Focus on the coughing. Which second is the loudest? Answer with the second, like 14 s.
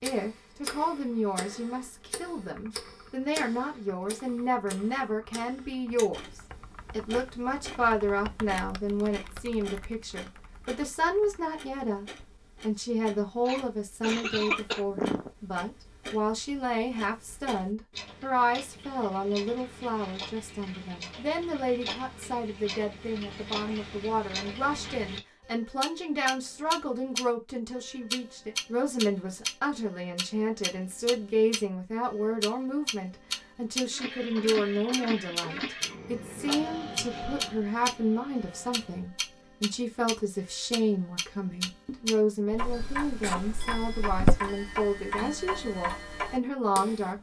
44 s.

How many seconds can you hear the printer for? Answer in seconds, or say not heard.
5 s.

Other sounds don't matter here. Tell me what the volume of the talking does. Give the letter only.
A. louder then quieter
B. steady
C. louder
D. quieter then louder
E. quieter
B.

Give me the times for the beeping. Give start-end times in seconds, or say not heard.
not heard.